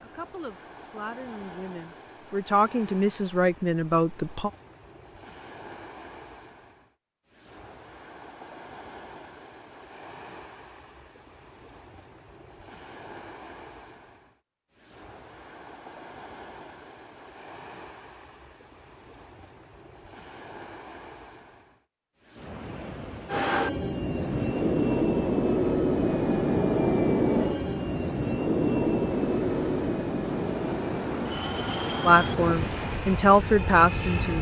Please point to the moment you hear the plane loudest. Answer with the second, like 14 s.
27 s.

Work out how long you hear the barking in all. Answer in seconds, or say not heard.
not heard.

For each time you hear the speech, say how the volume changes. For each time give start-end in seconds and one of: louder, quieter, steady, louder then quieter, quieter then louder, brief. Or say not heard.
0.0-4.5 louder
32.0-34.3 brief.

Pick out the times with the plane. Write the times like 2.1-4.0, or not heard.
23.2-34.3.